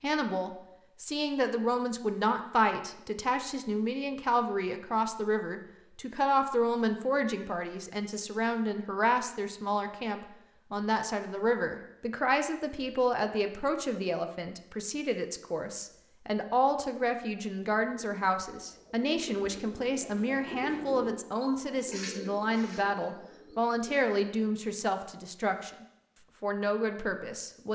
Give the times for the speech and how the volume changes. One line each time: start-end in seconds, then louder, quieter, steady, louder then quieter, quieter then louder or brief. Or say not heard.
0.0-27.7 steady.